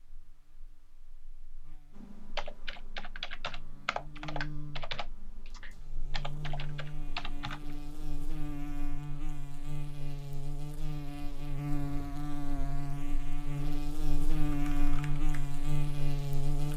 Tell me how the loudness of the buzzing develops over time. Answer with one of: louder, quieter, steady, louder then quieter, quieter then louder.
louder.